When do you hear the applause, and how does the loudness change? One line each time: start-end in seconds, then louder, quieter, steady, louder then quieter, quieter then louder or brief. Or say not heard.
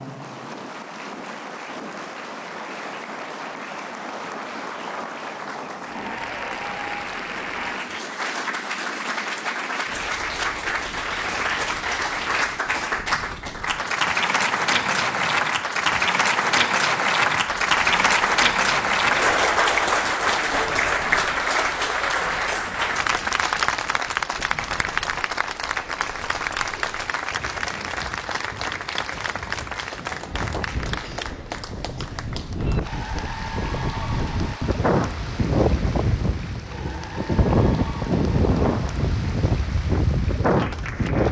0.0-41.2 louder then quieter.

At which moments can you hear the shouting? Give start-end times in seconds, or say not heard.
not heard.